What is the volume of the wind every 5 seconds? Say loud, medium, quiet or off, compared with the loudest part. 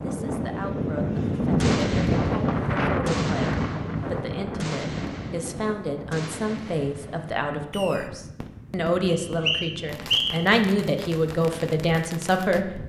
loud, quiet, quiet.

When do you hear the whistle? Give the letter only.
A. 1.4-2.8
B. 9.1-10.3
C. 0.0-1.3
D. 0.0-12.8
B.